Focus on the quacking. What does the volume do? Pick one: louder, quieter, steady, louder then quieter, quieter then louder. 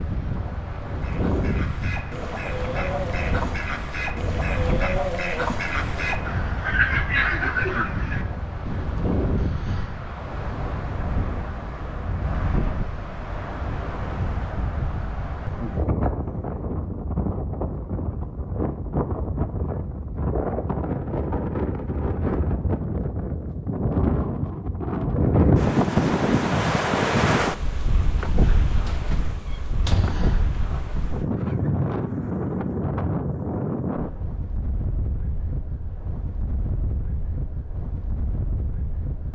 louder.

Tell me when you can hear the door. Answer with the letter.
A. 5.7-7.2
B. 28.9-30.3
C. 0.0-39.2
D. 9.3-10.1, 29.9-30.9
B.